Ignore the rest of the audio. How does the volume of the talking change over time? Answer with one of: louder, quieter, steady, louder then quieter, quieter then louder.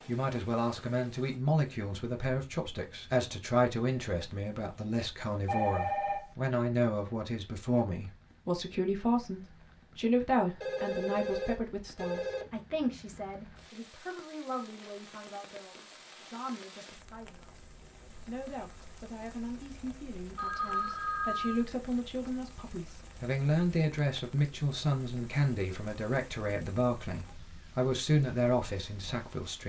quieter then louder.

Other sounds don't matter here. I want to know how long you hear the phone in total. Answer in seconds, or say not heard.
4 s.